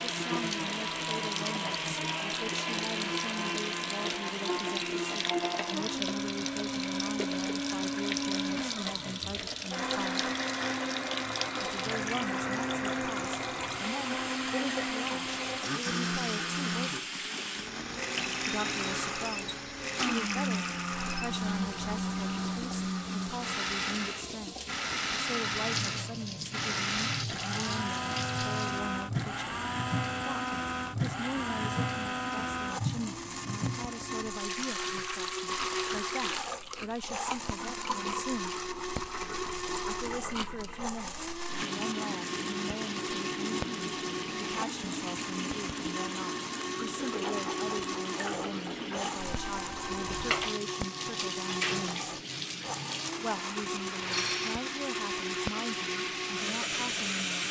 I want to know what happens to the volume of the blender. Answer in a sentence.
The volume of the blender stays about the same.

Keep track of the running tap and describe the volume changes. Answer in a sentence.
The loudness of the running tap stays about the same.